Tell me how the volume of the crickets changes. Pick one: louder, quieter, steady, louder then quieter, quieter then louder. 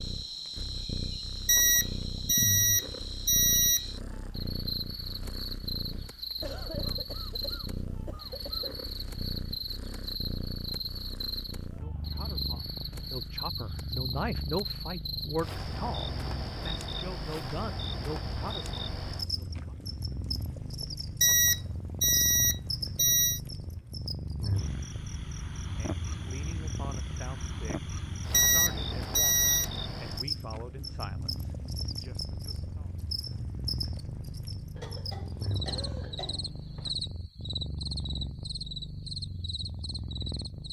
steady.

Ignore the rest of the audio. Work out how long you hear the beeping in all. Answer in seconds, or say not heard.
6 s.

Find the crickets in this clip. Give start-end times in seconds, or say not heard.
0.0-40.6.